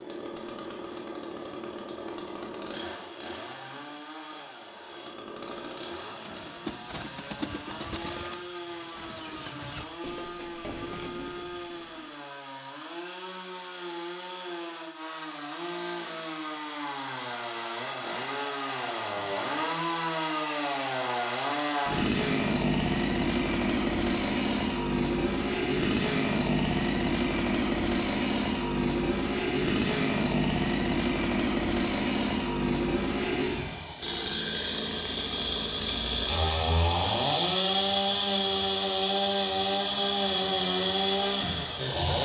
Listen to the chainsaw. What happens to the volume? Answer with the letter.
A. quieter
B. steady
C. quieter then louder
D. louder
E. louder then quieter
D.